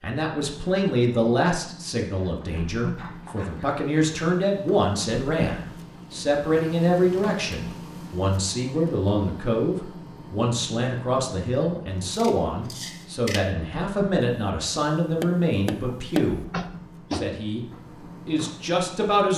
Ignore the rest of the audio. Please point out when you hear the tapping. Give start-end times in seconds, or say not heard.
14.2-17.4.